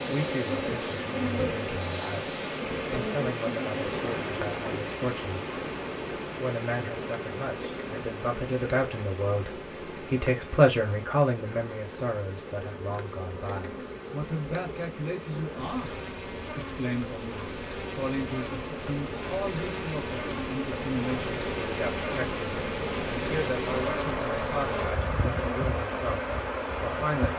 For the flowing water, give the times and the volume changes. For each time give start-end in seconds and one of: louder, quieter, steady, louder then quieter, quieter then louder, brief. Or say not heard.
0.0-27.3 quieter then louder.